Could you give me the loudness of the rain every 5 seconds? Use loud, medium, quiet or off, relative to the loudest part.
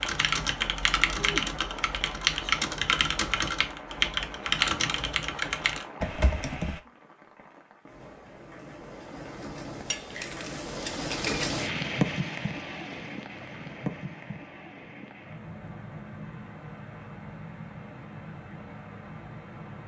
medium, medium, loud, medium.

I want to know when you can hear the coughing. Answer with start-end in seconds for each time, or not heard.
not heard.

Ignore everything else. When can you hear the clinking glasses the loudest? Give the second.
11 s.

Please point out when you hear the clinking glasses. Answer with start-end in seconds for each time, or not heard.
9.8-11.5.